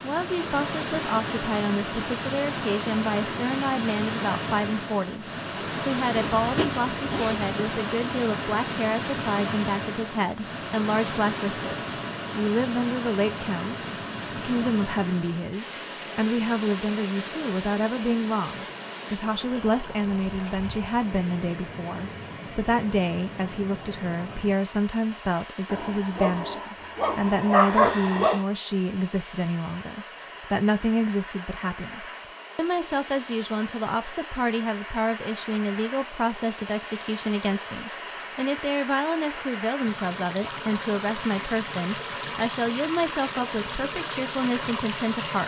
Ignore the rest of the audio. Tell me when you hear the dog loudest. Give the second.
28 s.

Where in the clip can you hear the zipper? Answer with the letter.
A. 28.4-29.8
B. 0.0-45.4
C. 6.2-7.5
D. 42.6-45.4
C.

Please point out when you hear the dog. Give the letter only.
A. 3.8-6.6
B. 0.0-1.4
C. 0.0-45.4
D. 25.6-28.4
D.